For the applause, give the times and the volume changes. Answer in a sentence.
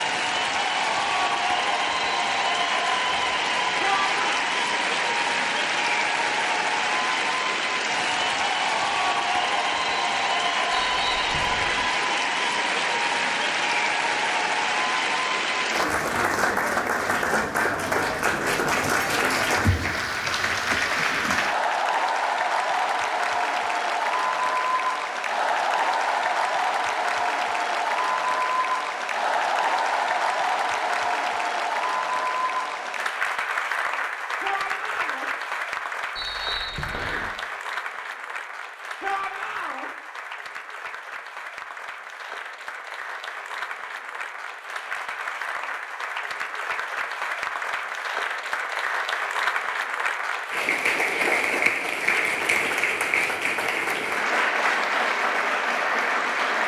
You can hear the applause from 0.0 to 56.6 s, getting quieter then louder.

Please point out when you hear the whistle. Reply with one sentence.
The whistle can be heard from 10.7 to 11.8 s and from 36.1 to 37.3 s.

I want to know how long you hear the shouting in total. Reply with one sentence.
The shouting can be heard for 2 seconds in total.